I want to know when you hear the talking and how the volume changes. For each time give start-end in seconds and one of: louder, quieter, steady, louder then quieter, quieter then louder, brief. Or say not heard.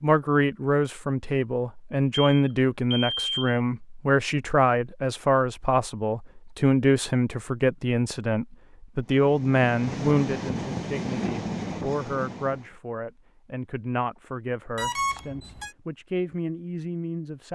0.0-17.4 quieter.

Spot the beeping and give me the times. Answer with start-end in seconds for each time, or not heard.
2.1-3.6, 14.8-15.8.